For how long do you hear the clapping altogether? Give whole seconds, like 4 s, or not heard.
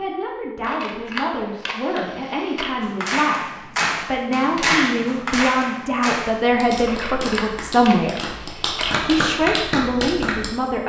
8 s.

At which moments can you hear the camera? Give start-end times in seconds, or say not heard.
0.6-2.7, 6.8-9.1.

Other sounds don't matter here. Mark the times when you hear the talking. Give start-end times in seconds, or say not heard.
0.0-10.8.